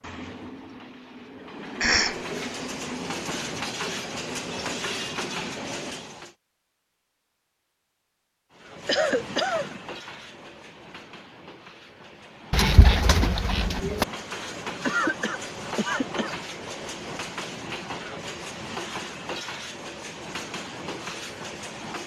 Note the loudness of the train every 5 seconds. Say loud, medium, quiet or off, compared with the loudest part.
loud, loud, medium, loud, loud.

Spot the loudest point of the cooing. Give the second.
13 s.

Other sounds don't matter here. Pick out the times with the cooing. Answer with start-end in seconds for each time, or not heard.
12.5-14.1.